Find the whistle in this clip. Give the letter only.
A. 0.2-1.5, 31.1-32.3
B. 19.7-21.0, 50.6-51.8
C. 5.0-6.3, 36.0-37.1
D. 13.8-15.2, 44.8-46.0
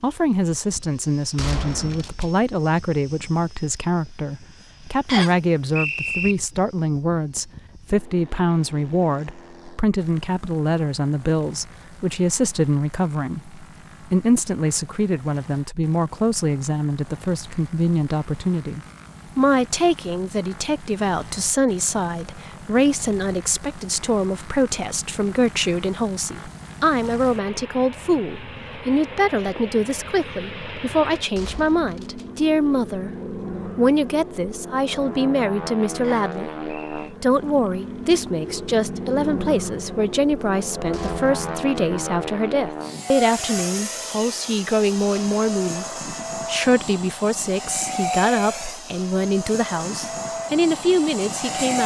C.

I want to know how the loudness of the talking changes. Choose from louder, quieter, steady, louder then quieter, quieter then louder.
steady.